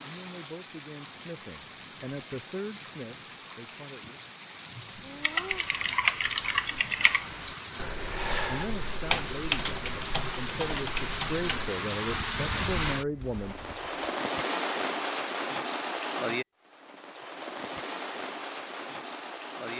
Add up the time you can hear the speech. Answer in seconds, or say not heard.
9 s.